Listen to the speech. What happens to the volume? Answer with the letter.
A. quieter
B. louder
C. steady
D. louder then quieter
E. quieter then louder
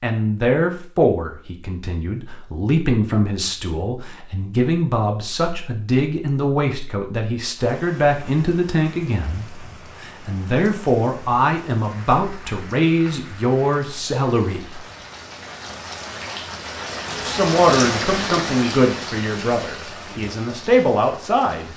C.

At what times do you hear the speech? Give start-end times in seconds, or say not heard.
0.0-14.8, 17.2-21.7.